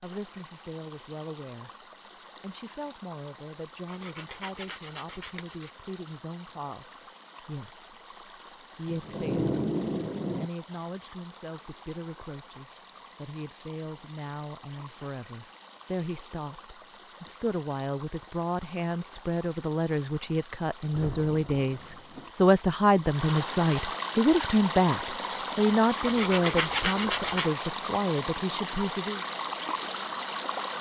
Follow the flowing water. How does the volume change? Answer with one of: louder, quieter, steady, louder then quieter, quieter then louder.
louder.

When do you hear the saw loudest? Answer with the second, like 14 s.
27 s.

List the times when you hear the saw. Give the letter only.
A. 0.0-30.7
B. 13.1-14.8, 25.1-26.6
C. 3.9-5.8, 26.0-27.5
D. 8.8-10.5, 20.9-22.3
C.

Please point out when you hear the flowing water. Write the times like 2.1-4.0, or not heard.
0.0-30.7.